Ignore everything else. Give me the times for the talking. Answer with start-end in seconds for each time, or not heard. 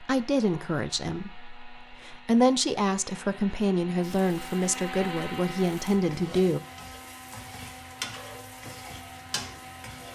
0.0-6.6.